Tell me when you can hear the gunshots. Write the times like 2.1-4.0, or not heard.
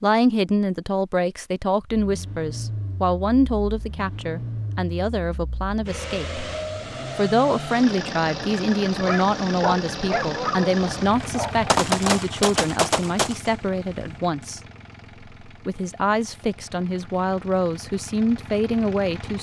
10.8-14.2.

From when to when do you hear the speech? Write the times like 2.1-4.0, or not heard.
0.0-6.4, 7.2-14.6, 15.4-19.3.